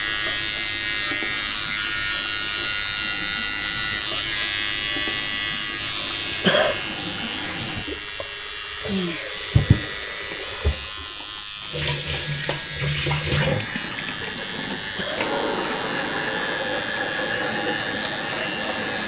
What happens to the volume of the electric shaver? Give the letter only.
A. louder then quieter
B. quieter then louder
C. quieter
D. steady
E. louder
C.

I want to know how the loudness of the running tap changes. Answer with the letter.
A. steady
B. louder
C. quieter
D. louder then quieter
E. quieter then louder
B.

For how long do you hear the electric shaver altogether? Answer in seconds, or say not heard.
19 s.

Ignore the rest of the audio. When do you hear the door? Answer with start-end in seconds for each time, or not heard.
not heard.